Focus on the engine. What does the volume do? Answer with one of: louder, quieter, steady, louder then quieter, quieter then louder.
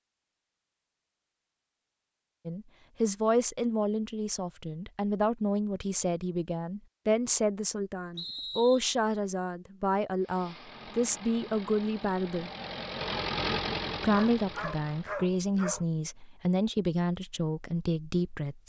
louder then quieter.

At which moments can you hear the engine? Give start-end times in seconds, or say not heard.
10.2-15.2.